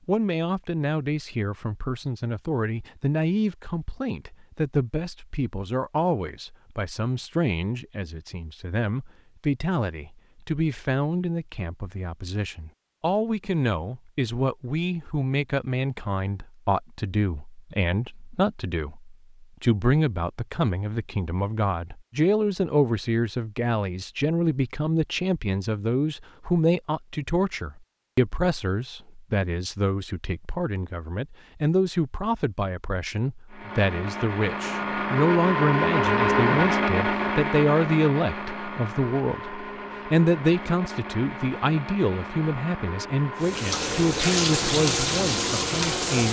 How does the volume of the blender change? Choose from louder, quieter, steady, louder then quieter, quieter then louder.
quieter.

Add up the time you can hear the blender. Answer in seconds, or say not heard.
13 s.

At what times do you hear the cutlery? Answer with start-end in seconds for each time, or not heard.
not heard.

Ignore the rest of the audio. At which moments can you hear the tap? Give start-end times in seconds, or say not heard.
43.4-46.2.